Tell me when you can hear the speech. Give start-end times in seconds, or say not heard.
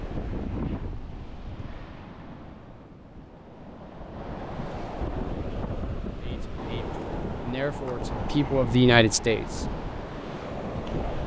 6.2-9.7.